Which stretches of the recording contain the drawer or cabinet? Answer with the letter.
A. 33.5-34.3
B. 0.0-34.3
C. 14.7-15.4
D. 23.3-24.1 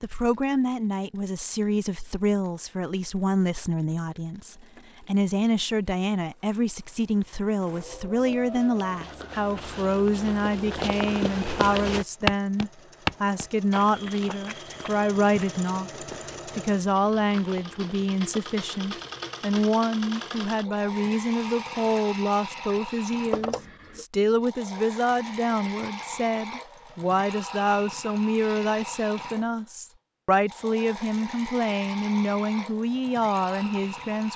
D.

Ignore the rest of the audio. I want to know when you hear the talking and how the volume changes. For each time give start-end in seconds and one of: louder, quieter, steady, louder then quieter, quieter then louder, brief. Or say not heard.
0.0-34.3 steady.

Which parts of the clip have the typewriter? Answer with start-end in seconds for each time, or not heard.
not heard.